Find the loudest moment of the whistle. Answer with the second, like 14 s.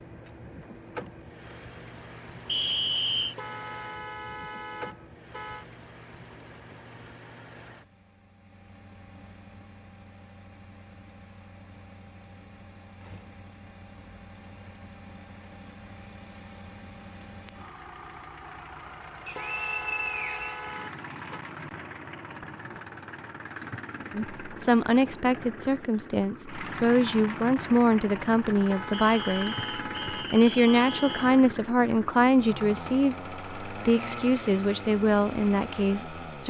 3 s.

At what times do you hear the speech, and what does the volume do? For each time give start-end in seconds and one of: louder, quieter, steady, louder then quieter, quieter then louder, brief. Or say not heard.
24.1-36.4 steady.